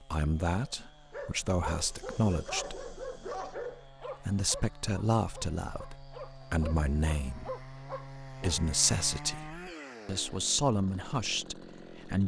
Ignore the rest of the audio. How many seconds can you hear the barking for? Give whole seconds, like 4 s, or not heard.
8 s.